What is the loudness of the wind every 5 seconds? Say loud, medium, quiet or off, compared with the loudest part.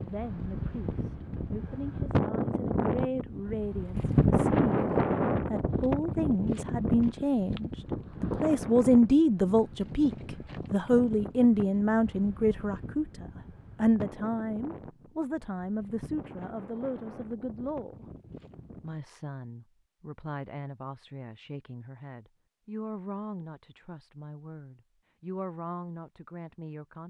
loud, loud, quiet, quiet, off, off.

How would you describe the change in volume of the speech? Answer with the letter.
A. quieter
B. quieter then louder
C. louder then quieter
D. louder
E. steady
C.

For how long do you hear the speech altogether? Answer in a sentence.
You can hear the speech for 26 seconds altogether.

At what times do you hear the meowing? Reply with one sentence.
You can't hear the meowing here.